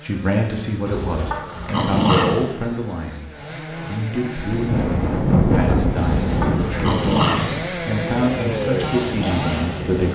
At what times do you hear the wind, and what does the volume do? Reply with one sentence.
The wind can be heard from 4.5 to 10.1 s, getting quieter.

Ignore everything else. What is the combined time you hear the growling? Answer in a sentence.
The growling can be heard for 3 seconds in total.